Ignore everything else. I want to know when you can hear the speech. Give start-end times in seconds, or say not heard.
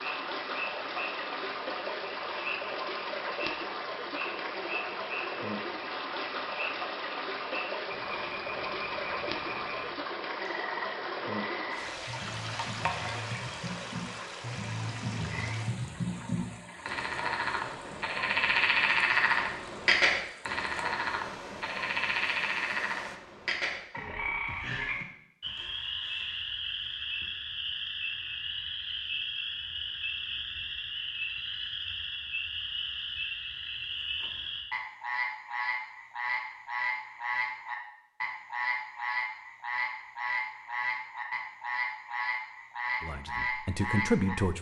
43.0-44.5.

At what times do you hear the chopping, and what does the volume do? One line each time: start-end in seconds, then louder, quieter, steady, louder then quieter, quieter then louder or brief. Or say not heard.
not heard.